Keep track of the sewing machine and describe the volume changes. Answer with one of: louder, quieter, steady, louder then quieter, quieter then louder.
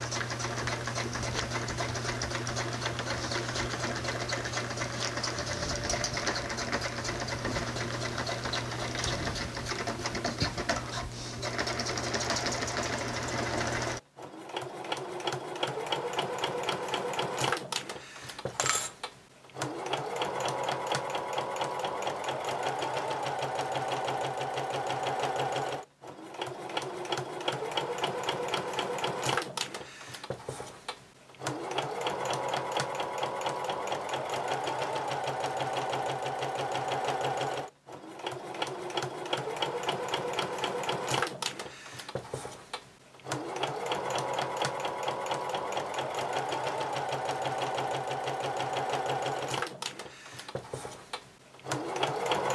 steady.